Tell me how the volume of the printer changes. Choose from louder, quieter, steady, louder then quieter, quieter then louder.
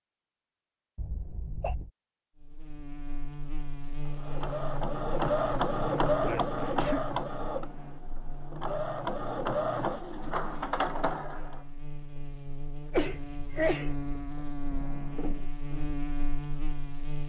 quieter then louder.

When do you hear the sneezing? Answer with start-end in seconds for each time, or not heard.
0.9-1.9, 6.2-7.0, 12.9-13.9.